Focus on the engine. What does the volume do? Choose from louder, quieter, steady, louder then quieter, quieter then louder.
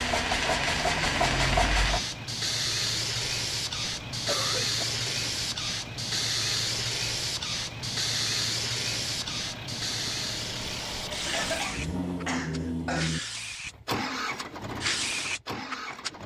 louder.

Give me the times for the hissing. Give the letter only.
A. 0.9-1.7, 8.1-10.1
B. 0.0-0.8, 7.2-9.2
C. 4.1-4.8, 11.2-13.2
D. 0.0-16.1
D.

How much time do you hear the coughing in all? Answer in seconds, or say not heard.
3 s.